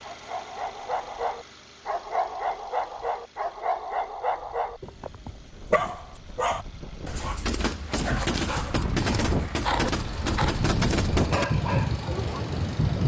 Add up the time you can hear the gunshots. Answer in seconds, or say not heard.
4 s.